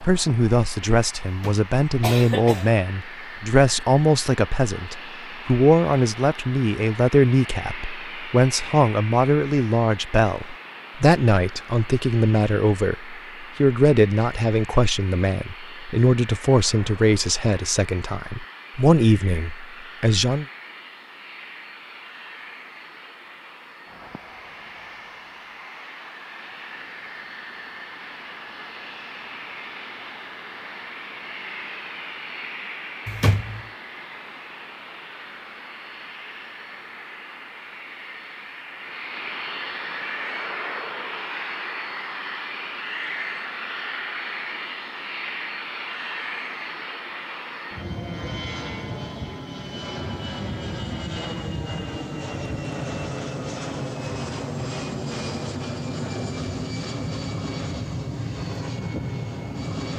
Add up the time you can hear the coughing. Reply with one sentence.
You can hear the coughing for 2 seconds altogether.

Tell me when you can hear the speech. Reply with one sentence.
You can hear the speech from 0.0 to 20.4 s.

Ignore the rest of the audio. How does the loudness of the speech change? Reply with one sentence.
The volume of the speech stays about the same.